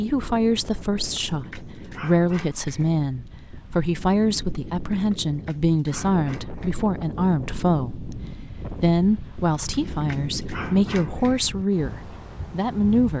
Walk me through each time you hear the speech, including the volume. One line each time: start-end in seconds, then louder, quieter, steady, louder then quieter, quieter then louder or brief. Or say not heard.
0.0-13.1 steady.